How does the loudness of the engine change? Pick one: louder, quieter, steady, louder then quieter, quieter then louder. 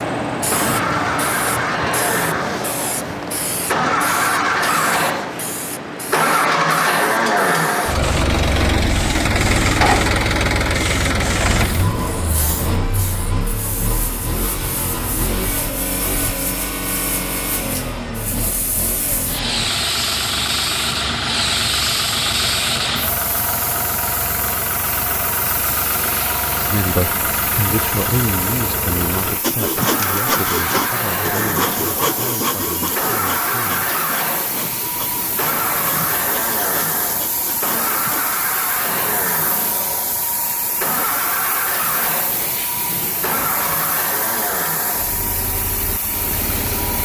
quieter.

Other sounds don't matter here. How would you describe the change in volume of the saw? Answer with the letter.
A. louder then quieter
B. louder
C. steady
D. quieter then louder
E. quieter
E.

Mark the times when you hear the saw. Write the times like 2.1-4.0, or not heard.
29.4-38.4.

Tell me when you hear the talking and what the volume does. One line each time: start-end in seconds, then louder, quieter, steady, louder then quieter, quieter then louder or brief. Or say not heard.
26.7-33.9 quieter.